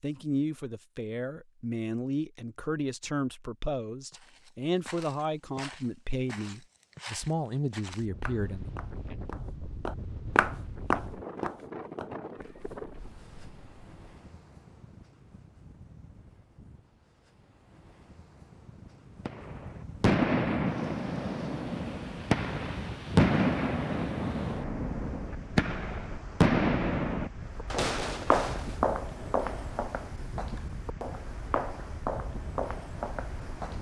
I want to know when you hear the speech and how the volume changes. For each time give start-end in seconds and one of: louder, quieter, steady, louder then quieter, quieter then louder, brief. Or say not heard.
0.0-8.7 steady.